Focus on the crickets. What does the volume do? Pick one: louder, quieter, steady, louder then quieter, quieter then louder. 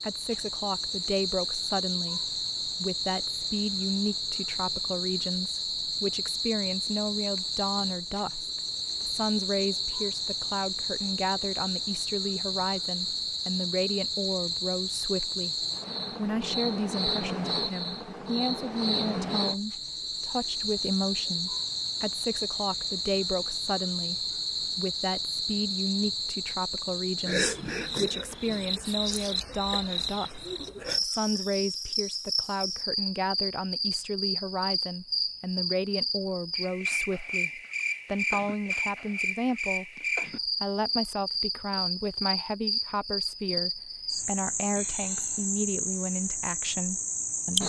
steady.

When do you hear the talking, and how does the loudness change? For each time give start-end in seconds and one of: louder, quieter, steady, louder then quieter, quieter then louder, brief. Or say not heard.
0.0-47.6 steady.